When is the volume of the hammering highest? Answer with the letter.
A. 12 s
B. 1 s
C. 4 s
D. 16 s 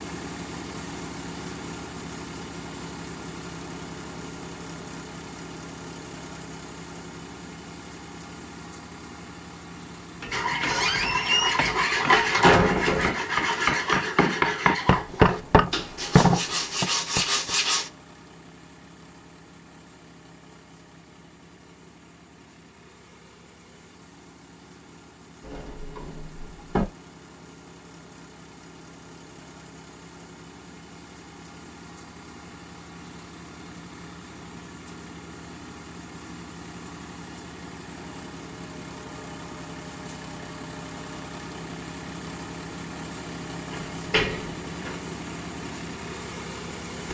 D.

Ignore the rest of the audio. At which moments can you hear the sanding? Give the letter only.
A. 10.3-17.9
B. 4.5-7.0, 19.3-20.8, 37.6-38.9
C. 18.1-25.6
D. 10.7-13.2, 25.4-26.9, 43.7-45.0
A.